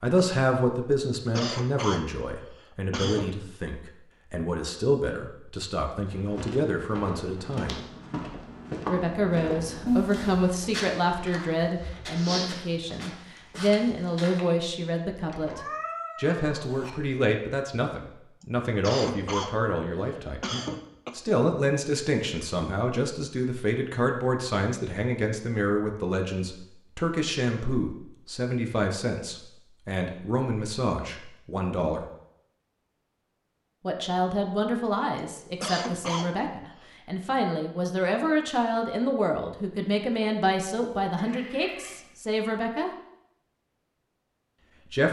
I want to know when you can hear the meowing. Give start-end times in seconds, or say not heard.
9.8-10.4, 15.2-16.9, 41.1-42.1.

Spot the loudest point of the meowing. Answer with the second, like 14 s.
10 s.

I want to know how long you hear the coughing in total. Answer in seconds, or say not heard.
6 s.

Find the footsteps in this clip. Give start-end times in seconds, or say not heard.
6.0-14.4.